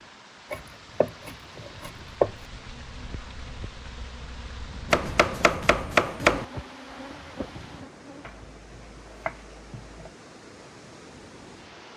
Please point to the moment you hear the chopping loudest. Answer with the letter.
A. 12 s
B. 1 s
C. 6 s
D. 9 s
C.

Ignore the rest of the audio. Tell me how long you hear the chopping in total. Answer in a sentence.
You can hear the chopping for 5 seconds altogether.